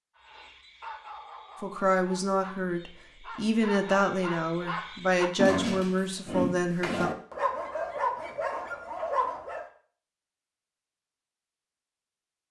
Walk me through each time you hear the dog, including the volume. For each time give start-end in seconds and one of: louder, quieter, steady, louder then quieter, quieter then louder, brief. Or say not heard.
0.1-9.7 louder.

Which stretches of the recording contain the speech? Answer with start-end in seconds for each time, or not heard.
1.6-7.1.